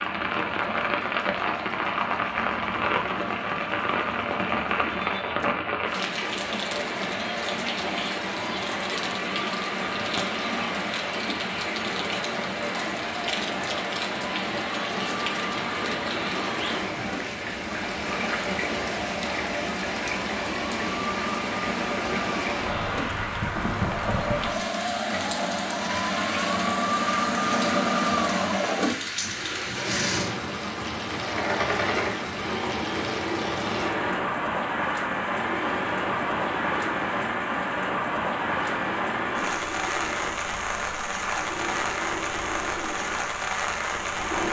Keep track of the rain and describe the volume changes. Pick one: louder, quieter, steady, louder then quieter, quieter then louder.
steady.